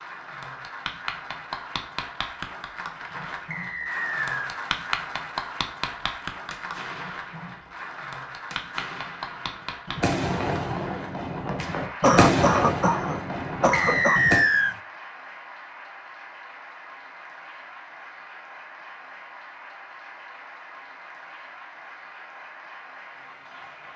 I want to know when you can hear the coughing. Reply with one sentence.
You can hear the coughing from 12.0 to 14.2 s.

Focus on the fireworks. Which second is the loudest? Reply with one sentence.
The loudest moment of the fireworks is at 12 seconds.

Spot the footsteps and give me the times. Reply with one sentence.
You can't hear the footsteps here.